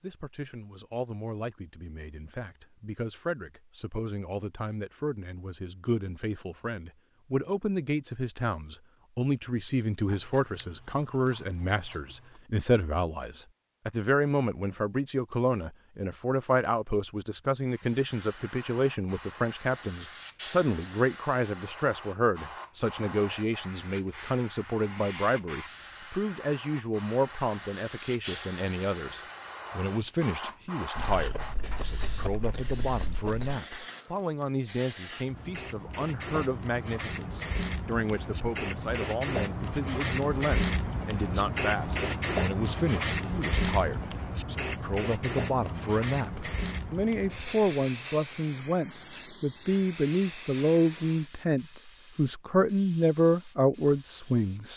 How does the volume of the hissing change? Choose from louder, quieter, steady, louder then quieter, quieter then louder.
louder then quieter.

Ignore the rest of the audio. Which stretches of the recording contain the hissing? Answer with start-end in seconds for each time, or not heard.
17.6-54.7.